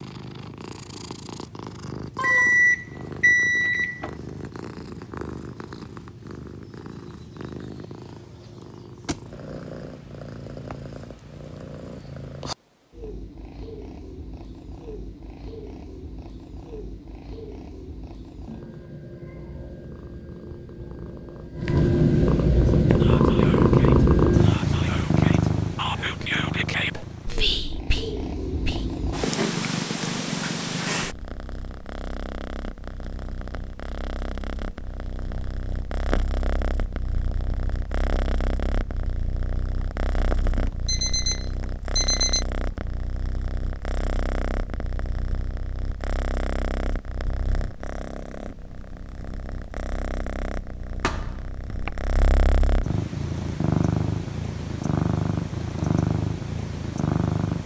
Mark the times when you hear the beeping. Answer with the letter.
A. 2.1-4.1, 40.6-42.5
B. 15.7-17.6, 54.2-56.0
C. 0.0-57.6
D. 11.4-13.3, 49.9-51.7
A.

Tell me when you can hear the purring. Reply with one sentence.
You can hear the purring from 0.0 to 57.6 s.